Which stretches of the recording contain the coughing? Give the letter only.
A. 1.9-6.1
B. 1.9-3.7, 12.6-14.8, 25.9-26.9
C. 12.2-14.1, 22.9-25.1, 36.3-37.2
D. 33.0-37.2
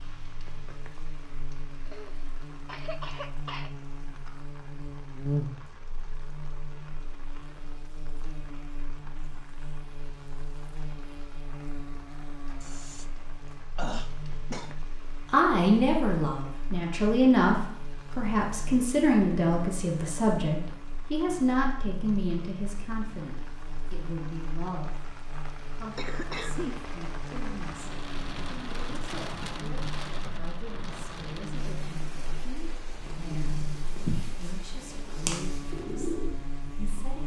B.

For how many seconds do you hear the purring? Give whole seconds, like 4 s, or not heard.
4 s.